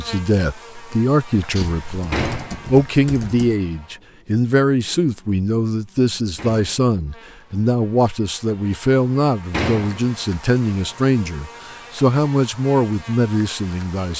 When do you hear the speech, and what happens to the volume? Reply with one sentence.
The speech can be heard from 0.0 to 14.1 s, at a steady volume.